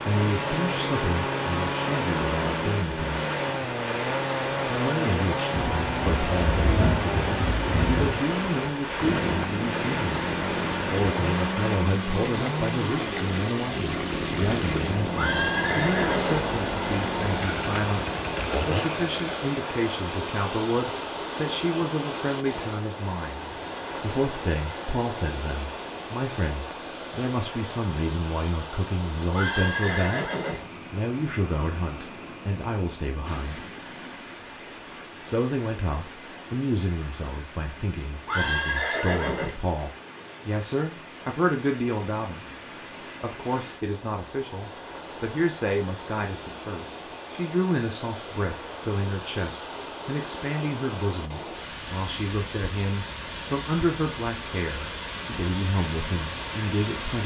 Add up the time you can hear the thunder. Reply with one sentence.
You can hear the thunder for 3 seconds altogether.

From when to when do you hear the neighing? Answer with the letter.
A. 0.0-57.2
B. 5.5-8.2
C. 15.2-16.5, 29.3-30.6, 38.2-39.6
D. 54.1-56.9
C.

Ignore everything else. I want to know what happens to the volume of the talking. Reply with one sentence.
The loudness of the talking stays about the same.